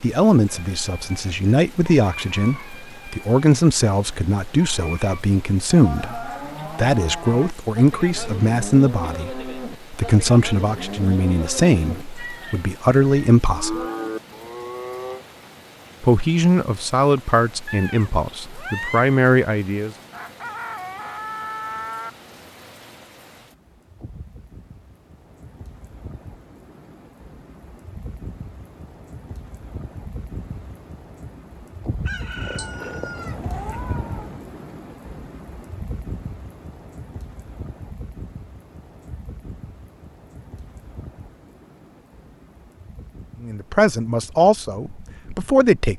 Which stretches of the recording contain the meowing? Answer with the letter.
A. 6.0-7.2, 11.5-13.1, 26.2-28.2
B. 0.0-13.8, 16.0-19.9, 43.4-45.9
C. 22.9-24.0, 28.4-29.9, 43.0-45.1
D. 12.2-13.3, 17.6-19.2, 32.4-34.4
D.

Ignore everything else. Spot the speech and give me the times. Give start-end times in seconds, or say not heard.
0.0-13.8, 16.0-19.9, 43.4-45.9.